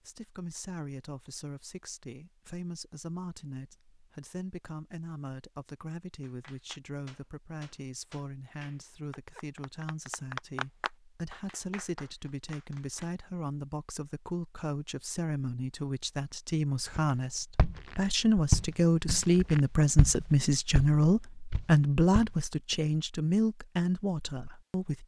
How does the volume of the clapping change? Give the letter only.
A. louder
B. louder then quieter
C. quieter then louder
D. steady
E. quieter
B.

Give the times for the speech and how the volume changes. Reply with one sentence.
You can hear the speech from 0.1 to 25.0 s, getting louder.